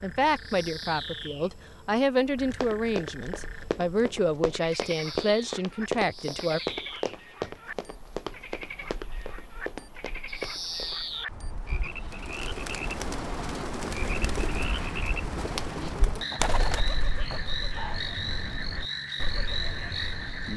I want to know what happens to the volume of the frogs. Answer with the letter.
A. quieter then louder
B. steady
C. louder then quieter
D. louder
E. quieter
D.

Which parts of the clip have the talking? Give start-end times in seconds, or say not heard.
0.0-6.6.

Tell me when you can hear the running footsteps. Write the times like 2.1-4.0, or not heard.
2.5-10.9.